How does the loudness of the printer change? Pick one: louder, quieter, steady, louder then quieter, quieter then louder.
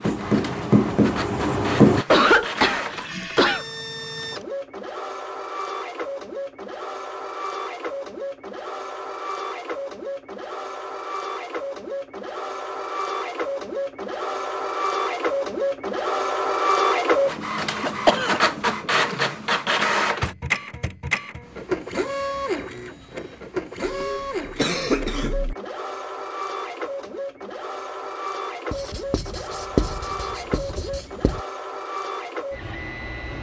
louder then quieter.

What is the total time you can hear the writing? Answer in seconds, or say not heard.
5 s.